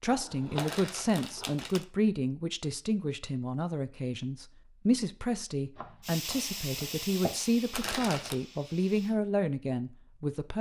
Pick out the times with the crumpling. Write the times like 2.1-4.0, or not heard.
0.6-1.9, 7.7-8.3.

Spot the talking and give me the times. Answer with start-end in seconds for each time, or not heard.
0.0-10.5.